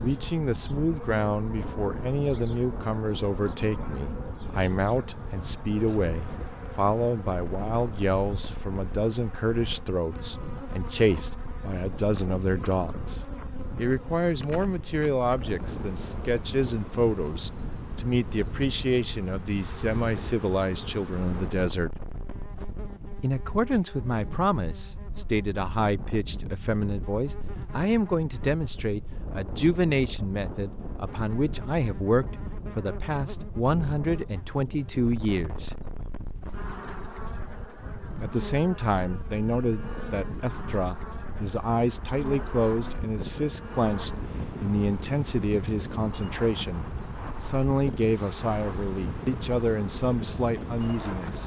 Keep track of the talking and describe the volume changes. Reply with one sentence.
The volume of the talking stays about the same.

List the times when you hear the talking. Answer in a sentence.
The talking can be heard from 0.0 to 22.0 s, from 23.2 to 35.8 s and from 38.2 to 51.4 s.